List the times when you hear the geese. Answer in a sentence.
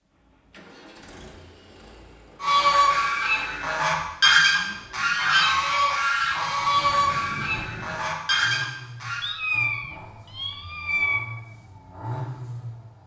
You can hear the geese from 2.4 to 9.2 s.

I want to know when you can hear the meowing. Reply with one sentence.
The meowing can be heard from 9.2 to 11.2 s.